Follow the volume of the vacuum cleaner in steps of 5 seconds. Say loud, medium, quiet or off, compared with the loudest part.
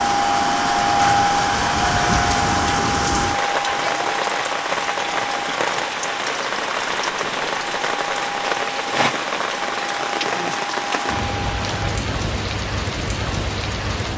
loud, medium, medium.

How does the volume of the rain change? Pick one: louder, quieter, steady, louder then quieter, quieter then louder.
steady.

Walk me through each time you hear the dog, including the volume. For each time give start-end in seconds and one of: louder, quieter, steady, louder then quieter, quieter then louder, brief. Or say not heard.
not heard.